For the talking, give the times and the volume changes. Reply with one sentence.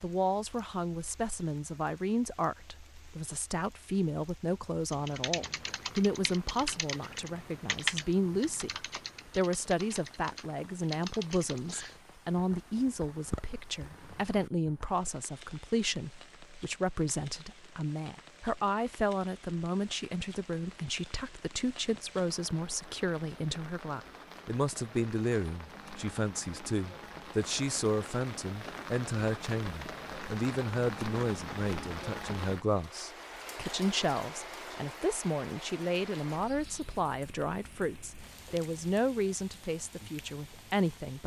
The talking can be heard from 0.0 to 41.2 s, at a steady volume.